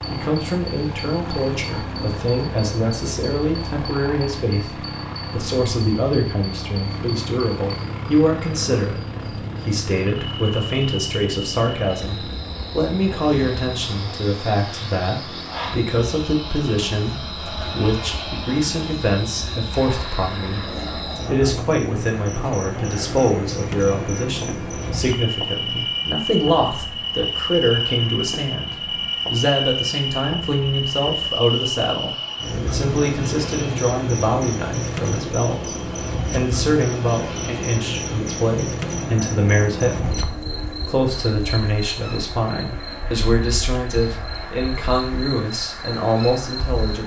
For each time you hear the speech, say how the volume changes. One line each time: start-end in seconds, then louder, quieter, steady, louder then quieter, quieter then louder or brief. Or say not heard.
0.1-47.0 steady.